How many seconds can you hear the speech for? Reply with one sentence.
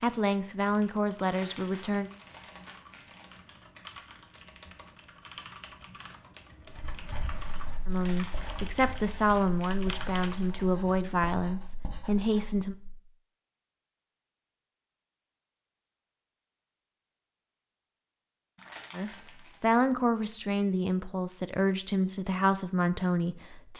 You can hear the speech for 12 seconds altogether.